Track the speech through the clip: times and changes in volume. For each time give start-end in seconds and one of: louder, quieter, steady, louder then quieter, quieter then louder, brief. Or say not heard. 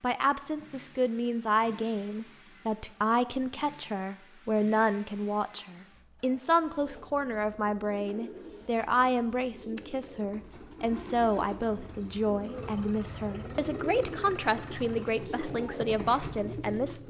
0.0-17.0 steady.